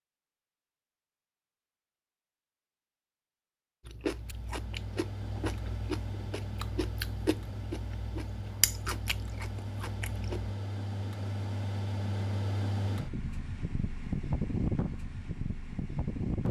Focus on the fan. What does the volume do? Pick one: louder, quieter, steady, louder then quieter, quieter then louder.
louder.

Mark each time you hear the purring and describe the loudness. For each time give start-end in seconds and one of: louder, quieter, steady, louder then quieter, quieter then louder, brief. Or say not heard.
not heard.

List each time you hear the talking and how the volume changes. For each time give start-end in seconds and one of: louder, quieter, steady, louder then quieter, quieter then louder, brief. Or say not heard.
not heard.